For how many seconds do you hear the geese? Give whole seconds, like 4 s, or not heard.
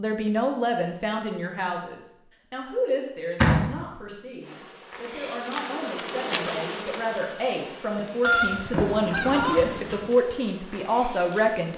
2 s.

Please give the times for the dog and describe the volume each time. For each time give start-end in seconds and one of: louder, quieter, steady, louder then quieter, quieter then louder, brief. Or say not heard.
not heard.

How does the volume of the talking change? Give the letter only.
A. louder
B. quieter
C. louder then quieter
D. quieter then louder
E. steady
D.